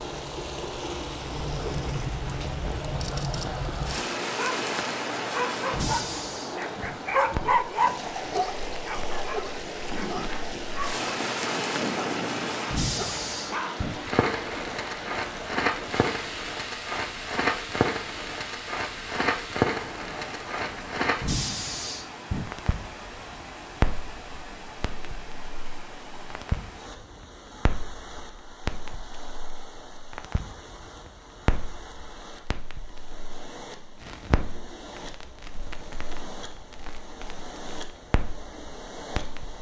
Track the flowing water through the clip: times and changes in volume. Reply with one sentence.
You can hear the flowing water from 0.0 to 39.5 s, getting quieter.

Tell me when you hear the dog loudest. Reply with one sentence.
The volume of the dog peaks at 8 seconds.